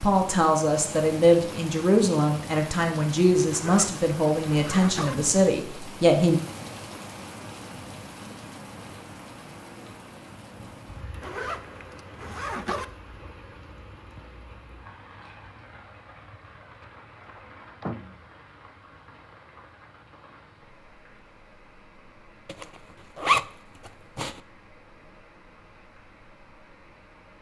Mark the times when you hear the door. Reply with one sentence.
You can hear the door from 16.7 to 18.2 s.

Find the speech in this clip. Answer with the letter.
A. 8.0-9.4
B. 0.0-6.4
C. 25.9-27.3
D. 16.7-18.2
B.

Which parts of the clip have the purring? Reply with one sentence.
You can't hear the purring here.